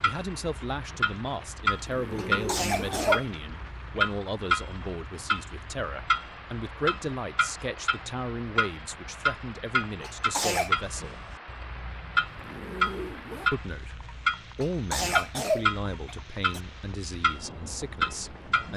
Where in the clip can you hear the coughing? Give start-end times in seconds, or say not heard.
2.1-3.2, 10.0-10.7, 14.6-16.6.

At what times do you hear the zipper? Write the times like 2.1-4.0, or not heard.
1.7-3.2, 12.3-13.5.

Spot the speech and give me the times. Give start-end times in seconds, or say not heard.
0.0-11.2, 13.5-18.7.